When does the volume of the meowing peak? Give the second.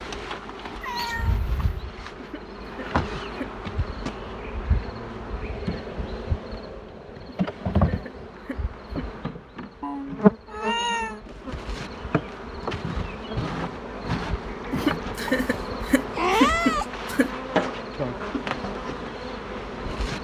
16 s.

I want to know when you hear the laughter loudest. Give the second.
17 s.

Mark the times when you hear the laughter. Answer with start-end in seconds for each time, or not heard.
2.1-3.5, 7.2-9.1, 14.7-17.3.